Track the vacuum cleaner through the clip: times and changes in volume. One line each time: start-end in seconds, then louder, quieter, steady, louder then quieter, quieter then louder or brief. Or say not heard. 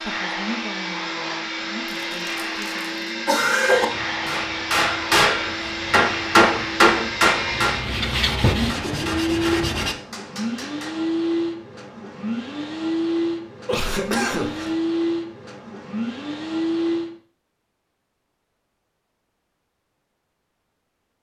0.0-17.1 steady.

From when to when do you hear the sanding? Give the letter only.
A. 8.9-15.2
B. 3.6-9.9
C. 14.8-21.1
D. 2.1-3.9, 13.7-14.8
B.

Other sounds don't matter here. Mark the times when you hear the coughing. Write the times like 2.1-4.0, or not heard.
2.1-3.9, 13.7-14.8.